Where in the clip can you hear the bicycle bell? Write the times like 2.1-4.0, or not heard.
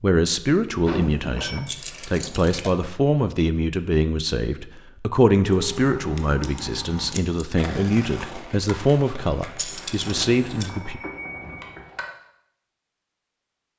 0.8-1.6, 10.0-11.9.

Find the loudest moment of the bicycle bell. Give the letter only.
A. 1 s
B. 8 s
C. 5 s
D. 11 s
A.